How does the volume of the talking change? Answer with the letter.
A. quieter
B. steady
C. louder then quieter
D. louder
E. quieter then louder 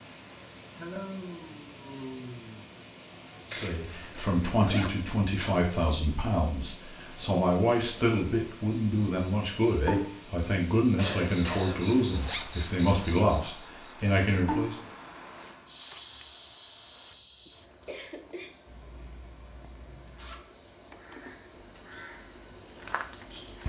B.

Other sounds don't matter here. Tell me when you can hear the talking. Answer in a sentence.
You can hear the talking from 3.5 to 14.8 s.